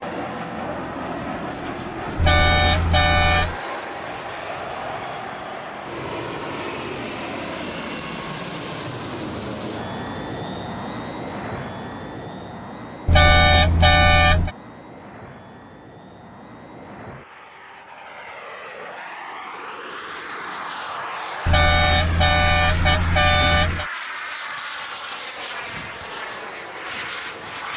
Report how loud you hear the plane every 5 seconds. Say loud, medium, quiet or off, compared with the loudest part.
loud, loud, loud, medium, loud, loud.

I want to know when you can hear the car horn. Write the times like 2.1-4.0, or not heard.
2.1-3.5, 13.1-14.5, 21.4-23.9.